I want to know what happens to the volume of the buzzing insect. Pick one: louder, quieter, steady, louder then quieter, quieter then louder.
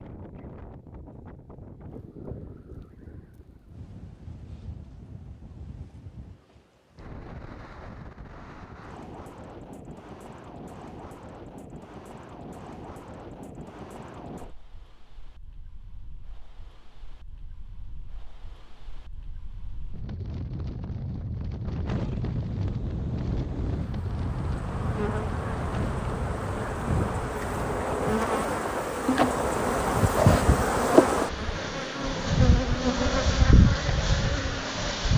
louder.